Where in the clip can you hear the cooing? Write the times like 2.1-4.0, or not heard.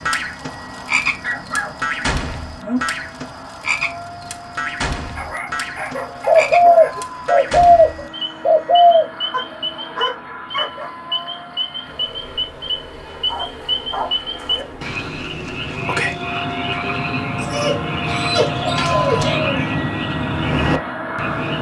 6.2-9.1, 18.1-19.8.